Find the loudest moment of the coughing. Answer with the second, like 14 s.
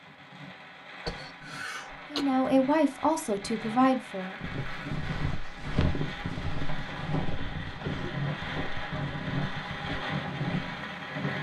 2 s.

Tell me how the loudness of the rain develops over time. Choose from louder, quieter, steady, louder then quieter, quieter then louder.
louder.